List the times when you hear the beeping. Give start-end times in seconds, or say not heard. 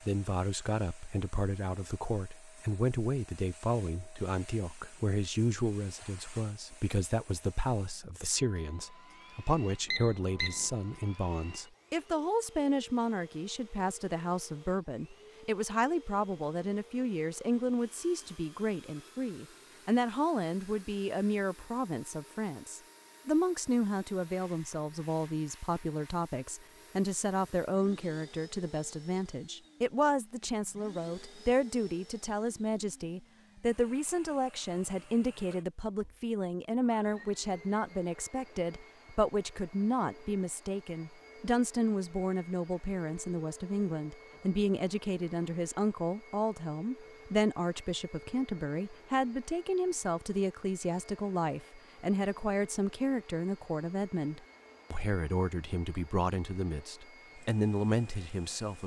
9.8-10.7.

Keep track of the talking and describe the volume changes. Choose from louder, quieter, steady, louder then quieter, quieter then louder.
steady.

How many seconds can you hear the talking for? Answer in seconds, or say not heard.
59 s.